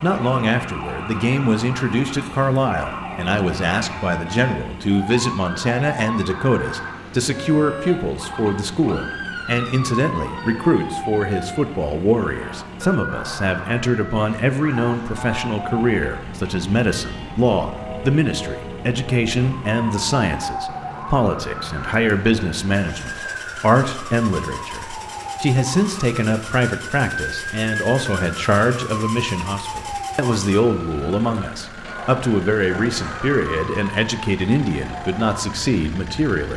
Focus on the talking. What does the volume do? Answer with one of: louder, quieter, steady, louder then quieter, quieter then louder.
steady.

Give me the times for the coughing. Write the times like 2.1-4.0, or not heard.
not heard.